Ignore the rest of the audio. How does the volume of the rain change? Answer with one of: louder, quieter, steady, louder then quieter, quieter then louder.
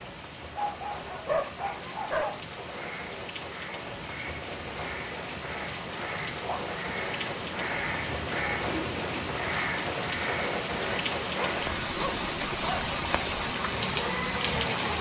louder.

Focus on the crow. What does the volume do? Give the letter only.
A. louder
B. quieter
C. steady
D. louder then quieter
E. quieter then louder
A.